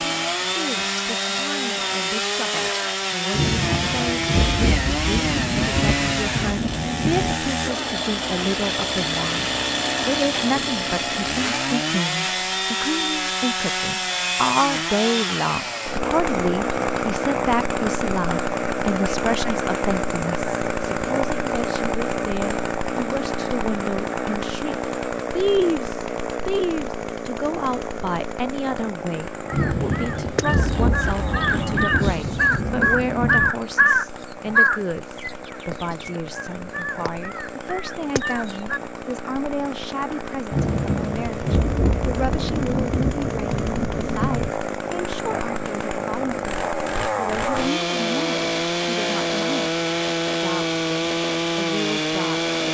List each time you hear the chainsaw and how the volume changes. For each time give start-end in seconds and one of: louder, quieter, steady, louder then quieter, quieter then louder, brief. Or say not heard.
0.0-52.6 quieter then louder.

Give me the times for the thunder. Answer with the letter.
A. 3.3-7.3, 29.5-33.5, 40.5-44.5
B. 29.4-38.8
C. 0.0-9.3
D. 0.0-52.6
A.